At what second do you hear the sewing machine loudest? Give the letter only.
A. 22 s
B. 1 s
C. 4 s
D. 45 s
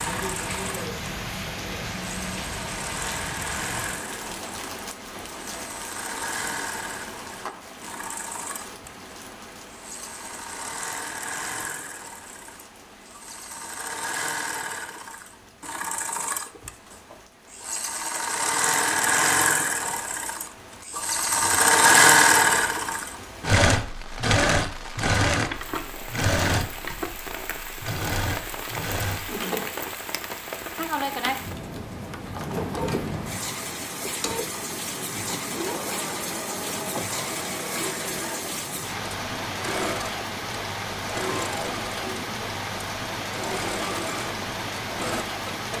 A.